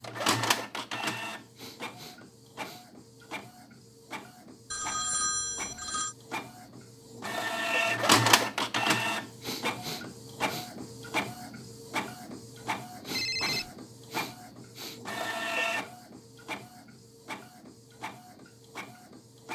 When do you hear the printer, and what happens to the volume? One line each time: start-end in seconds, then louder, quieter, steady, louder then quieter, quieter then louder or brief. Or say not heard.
0.0-19.5 louder then quieter.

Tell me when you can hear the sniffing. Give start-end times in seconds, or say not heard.
1.6-2.9, 9.4-10.7, 13.0-15.0.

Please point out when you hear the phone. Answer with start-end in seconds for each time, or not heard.
4.7-6.2, 13.1-13.7.